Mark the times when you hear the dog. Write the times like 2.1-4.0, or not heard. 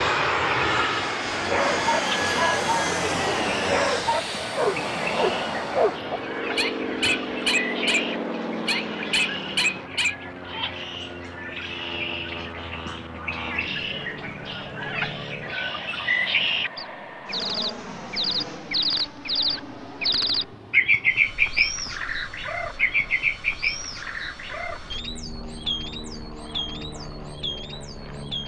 1.3-10.2.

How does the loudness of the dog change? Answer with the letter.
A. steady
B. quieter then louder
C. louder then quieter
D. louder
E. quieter
A.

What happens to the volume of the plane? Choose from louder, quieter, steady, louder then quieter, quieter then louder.
quieter.